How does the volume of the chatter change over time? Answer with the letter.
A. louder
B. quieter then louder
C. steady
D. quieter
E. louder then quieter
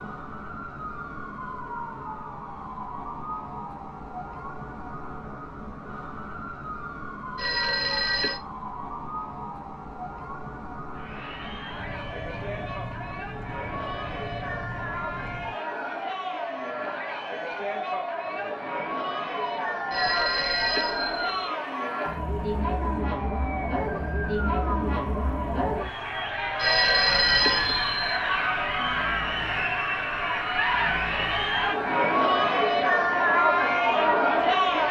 A.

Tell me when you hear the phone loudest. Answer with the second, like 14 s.
27 s.